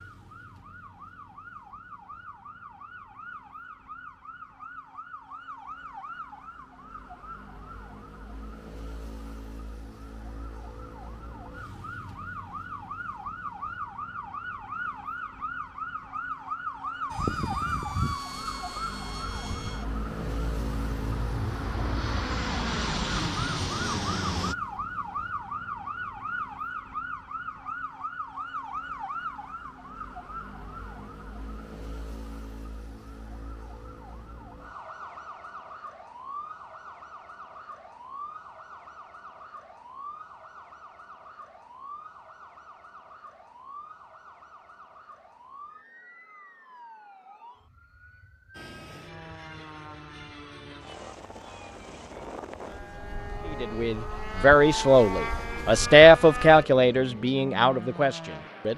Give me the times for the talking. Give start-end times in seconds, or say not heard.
53.5-58.7.